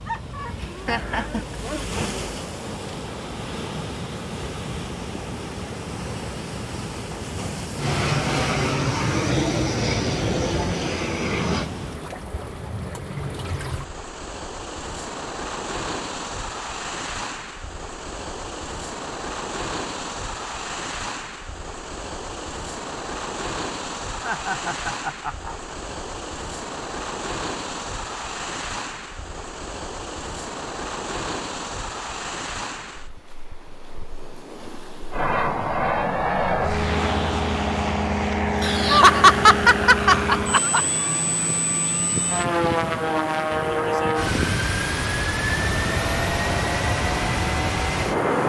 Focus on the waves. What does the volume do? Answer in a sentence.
The loudness of the waves stays about the same.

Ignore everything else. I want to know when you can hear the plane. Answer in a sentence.
You can hear the plane from 7.8 to 11.7 s and from 35.1 to 48.4 s.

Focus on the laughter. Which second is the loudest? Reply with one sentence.
The loudest moment of the laughter is at 39 seconds.